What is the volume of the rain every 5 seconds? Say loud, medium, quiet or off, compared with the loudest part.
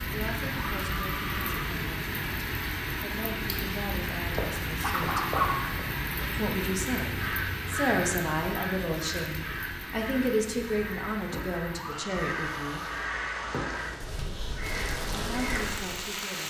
loud, loud, medium, loud.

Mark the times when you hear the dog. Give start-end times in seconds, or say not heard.
4.3-6.3.